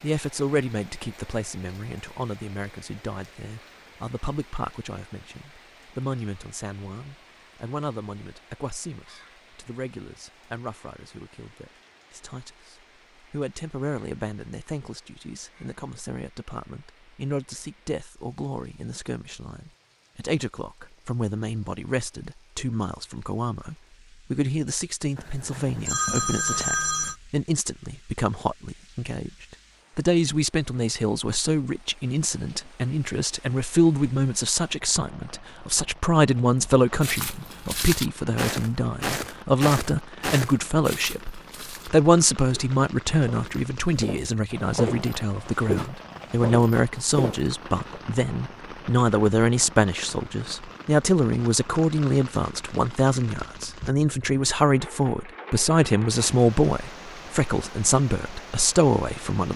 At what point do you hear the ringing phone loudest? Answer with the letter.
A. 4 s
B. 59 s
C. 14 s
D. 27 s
D.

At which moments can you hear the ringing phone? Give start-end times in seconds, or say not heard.
25.1-27.1.